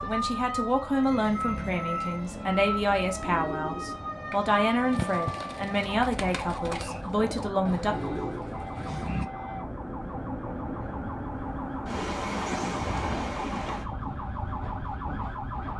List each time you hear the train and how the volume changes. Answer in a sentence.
The train can be heard from 0.0 to 15.7 s, getting louder.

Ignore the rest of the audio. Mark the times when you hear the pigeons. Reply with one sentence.
You can hear the pigeons from 1.1 to 9.3 s.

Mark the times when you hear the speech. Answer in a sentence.
The speech can be heard from 0.0 to 8.0 s.